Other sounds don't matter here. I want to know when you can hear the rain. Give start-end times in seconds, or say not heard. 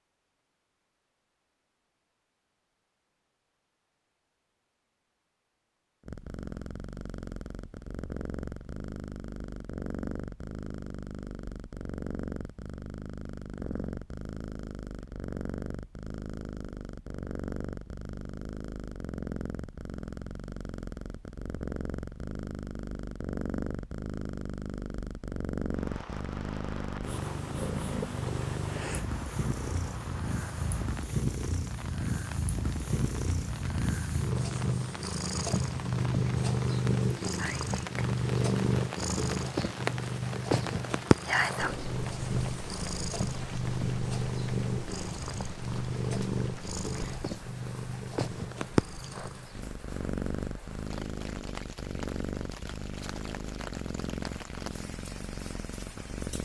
25.7-56.3.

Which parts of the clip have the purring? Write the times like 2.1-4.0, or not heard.
6.0-56.3.